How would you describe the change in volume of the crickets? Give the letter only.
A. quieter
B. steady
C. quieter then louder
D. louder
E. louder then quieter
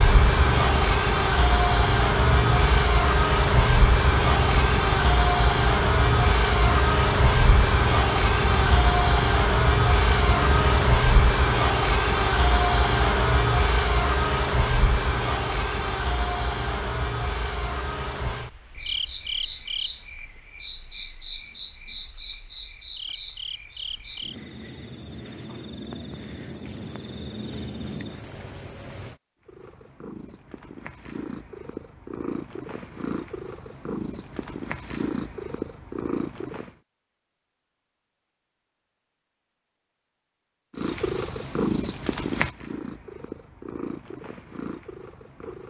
A.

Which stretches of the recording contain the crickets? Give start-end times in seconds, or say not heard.
0.0-29.2.